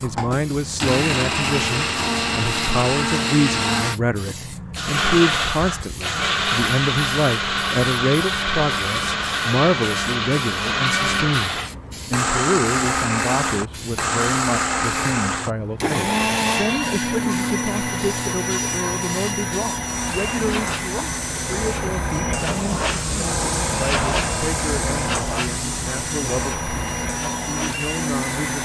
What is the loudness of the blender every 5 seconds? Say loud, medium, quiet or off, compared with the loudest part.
loud, loud, loud, loud, medium, medium.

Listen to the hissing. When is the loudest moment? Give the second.
24 s.